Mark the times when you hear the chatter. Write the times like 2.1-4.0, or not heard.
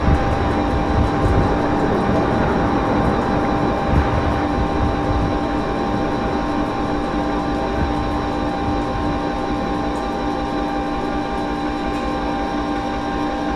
not heard.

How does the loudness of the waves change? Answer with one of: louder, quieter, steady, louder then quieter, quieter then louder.
quieter.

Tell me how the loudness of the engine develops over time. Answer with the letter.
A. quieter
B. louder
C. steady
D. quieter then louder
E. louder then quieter
C.